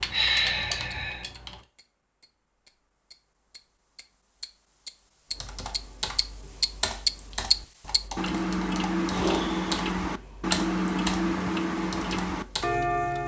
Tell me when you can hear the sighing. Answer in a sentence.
You can hear the sighing from 0.1 to 1.2 s and from 9.1 to 9.7 s.